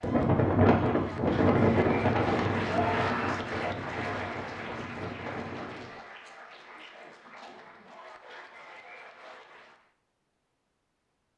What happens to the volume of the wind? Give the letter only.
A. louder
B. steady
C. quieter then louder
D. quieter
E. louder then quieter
D.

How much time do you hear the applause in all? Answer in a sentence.
The applause can be heard for 10 seconds in total.